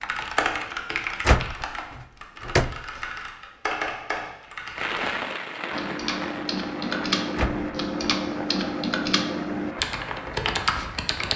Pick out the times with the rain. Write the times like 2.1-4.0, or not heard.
4.8-11.3.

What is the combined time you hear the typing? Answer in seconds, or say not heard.
11 s.